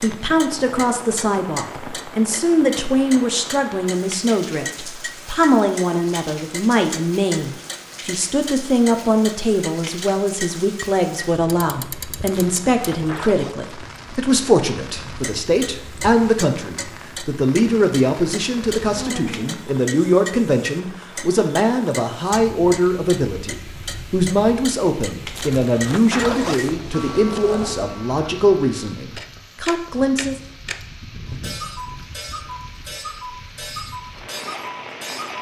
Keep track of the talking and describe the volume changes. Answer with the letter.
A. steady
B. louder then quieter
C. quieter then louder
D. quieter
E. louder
A.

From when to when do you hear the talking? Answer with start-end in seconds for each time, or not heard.
0.0-30.4.